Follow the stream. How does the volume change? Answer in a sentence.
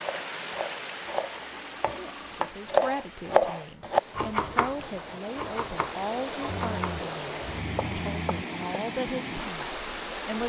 The loudness of the stream goes down, then up.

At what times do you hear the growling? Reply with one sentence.
The growling can be heard from 1.5 to 2.5 s and from 6.5 to 8.4 s.